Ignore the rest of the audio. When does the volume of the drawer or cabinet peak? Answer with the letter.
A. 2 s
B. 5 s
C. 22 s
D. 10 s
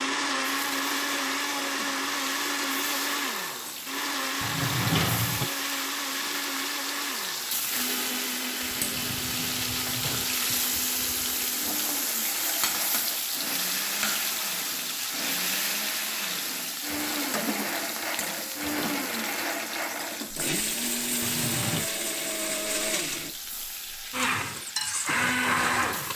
B.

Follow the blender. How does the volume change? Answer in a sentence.
The volume of the blender goes down, then up.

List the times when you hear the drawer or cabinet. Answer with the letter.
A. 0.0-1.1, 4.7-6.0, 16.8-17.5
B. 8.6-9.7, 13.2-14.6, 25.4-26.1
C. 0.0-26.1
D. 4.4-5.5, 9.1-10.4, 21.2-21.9
D.